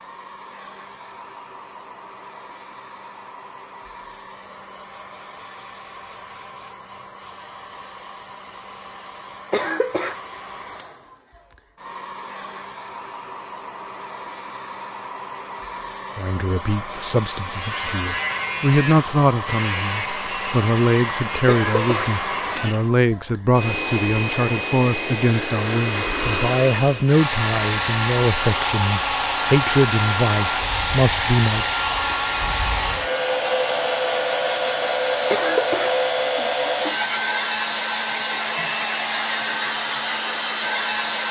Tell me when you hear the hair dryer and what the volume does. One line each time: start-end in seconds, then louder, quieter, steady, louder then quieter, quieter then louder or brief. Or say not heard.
0.0-41.2 louder.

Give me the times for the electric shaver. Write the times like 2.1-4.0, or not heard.
17.4-22.9.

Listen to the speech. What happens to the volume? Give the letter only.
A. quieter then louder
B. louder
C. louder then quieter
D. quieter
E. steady
E.